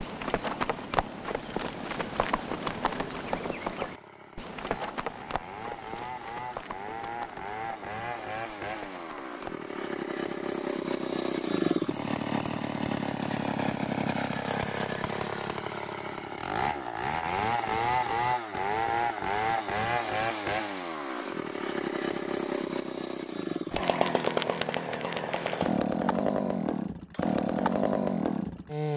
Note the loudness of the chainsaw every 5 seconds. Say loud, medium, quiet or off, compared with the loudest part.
quiet, medium, loud, loud, loud, loud.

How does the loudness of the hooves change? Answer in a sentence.
The loudness of the hooves goes down.